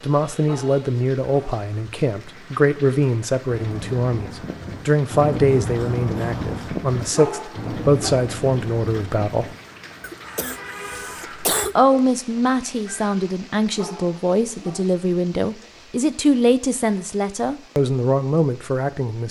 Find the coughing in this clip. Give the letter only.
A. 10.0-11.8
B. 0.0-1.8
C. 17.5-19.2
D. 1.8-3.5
A.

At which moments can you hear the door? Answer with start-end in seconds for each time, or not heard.
not heard.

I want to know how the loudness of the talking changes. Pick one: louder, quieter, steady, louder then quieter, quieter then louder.
steady.